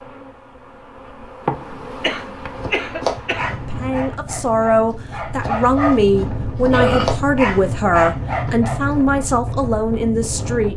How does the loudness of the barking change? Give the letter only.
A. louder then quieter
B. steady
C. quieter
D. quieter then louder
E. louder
D.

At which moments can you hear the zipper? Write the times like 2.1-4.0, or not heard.
not heard.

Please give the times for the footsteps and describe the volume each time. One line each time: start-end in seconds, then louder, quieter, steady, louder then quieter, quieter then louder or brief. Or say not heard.
not heard.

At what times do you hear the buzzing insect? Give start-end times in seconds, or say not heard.
0.0-4.0.